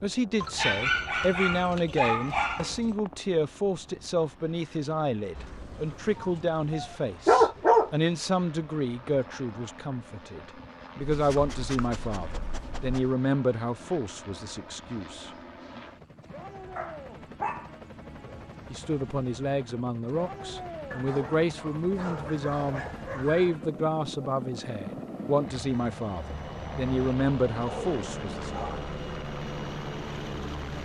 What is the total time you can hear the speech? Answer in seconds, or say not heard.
26 s.